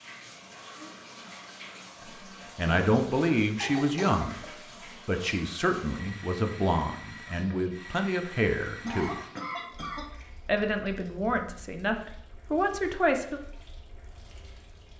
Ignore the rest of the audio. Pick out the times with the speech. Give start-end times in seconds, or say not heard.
2.0-4.3, 5.0-9.2, 10.4-13.4.